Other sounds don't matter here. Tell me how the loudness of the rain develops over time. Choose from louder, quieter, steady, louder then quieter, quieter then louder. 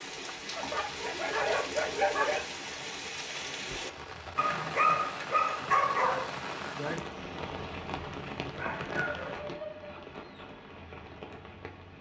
quieter.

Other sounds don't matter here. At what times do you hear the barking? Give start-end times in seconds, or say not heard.
0.6-2.5, 4.3-6.3, 8.6-10.5.